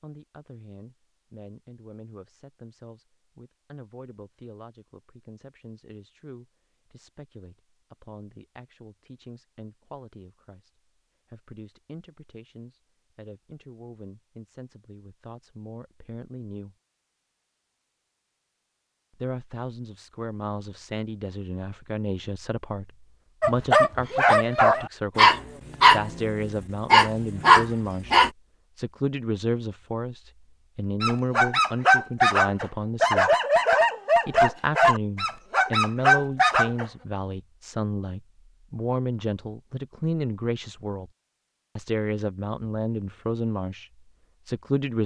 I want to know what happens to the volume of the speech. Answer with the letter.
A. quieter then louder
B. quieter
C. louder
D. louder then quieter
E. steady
C.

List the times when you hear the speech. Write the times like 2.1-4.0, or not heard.
0.0-16.8, 19.1-33.3, 34.2-41.1, 41.8-45.0.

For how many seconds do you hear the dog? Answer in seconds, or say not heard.
11 s.